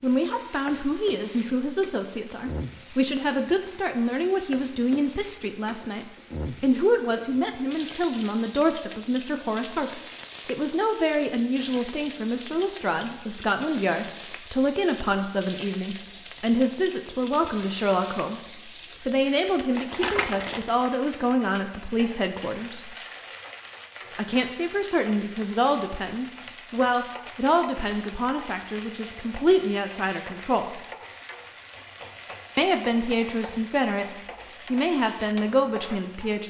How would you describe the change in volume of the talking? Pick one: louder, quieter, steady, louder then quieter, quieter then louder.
steady.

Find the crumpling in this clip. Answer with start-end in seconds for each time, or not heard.
19.8-20.7.